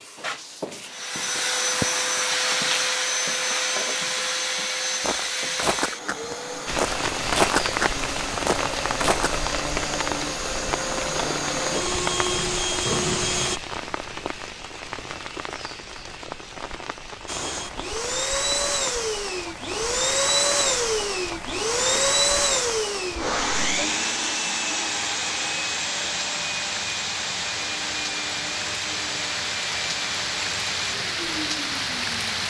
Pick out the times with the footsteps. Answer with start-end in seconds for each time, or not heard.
0.1-9.3.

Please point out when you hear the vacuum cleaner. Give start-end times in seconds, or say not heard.
0.0-13.6, 17.2-32.4.